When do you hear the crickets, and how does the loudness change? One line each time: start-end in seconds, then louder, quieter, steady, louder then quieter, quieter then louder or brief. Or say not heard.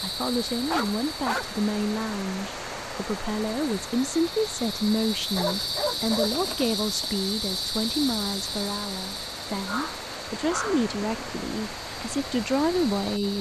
0.0-13.3 louder then quieter.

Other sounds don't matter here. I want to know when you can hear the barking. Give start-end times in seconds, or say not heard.
0.6-1.5, 5.3-6.4, 9.7-10.9.